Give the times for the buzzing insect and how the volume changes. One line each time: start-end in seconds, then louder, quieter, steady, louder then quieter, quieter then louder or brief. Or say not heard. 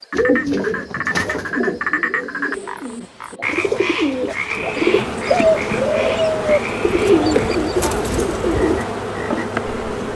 4.5-10.0 steady.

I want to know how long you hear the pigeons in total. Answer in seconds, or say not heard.
9 s.